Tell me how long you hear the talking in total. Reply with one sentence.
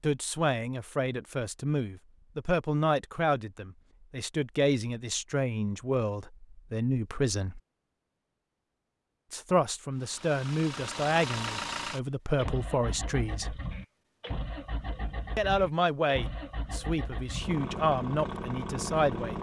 You can hear the talking for 16 seconds altogether.